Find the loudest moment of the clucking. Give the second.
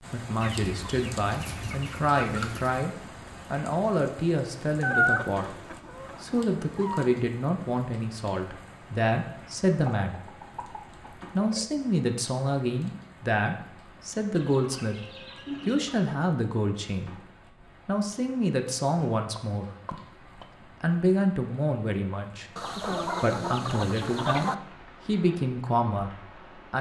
5 s.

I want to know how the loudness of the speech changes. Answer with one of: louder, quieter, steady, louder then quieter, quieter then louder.
steady.